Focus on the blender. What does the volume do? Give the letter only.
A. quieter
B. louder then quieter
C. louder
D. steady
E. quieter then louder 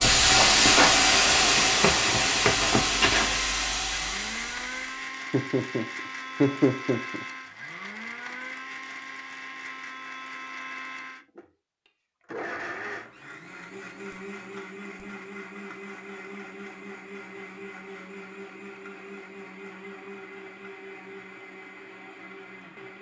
A.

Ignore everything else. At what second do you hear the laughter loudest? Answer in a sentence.
The volume of the laughter peaks at 7 seconds.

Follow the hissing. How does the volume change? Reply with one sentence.
The loudness of the hissing goes down.